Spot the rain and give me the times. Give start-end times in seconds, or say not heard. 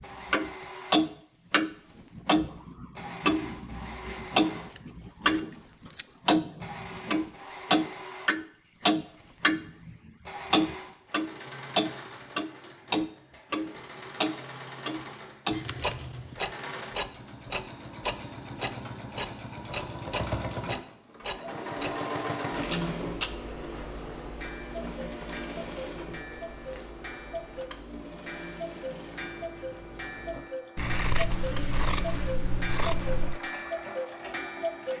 not heard.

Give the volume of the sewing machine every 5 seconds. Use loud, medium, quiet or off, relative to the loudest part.
medium, medium, medium, medium, loud, medium, medium.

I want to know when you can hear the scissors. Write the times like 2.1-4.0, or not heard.
4.0-6.0, 15.5-16.4, 30.8-33.4.